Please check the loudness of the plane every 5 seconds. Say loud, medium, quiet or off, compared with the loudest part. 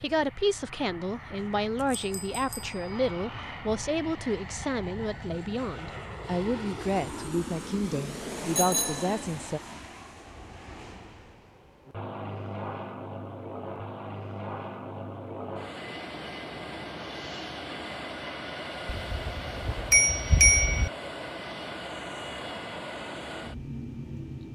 medium, loud, loud, loud, loud.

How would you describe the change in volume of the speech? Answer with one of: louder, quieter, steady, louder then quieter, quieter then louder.
steady.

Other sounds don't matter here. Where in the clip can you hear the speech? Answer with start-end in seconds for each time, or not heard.
0.0-9.6.